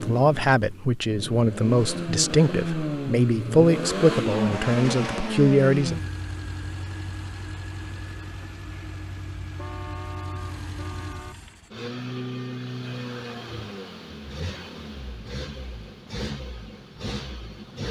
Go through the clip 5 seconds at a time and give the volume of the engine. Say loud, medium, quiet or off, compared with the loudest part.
loud, medium, medium, medium.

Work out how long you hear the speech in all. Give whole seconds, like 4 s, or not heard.
6 s.